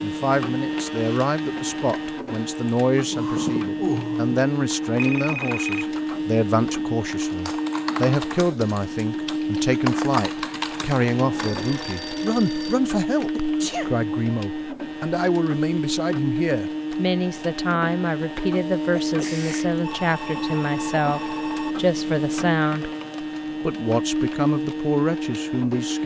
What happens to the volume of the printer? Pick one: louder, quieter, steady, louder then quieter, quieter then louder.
steady.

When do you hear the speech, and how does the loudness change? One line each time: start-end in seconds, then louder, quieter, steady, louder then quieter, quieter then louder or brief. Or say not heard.
0.0-22.9 steady
23.6-26.0 brief.